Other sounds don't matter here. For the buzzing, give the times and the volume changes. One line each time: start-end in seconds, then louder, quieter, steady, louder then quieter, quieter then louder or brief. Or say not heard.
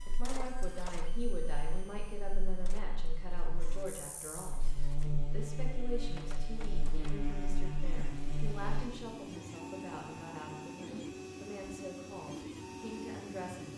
0.0-8.8 louder.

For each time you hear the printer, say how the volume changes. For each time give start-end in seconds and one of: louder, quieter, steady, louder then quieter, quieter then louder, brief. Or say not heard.
0.0-13.7 quieter then louder.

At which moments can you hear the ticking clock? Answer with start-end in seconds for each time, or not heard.
not heard.